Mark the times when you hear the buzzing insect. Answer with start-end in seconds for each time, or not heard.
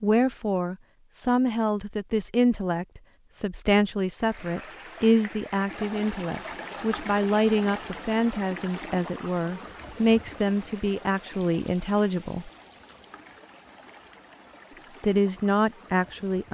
not heard.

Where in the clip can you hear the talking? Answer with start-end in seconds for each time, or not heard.
0.0-12.5, 15.0-16.4.